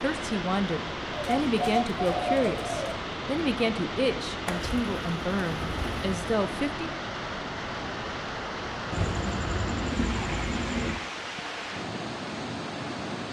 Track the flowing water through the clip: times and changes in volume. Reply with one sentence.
You can hear the flowing water from 0.0 to 13.2 s, at a steady volume.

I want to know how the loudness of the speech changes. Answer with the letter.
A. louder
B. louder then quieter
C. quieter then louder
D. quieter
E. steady
E.